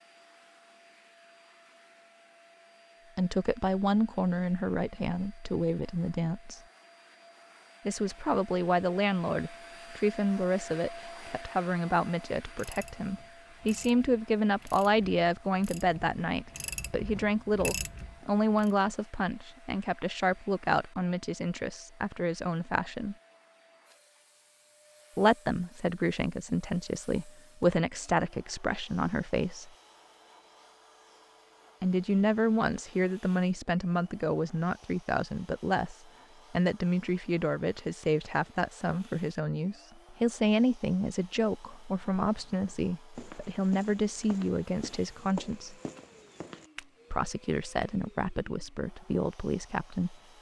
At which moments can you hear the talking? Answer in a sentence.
You can hear the talking from 3.1 to 6.6 s, from 7.8 to 23.1 s, from 25.1 to 29.7 s, from 31.8 to 45.8 s and from 47.1 to 50.1 s.